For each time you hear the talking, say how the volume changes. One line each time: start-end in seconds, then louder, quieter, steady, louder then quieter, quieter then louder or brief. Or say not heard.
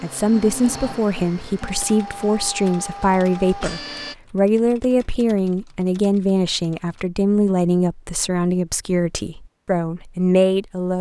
0.0-10.9 steady.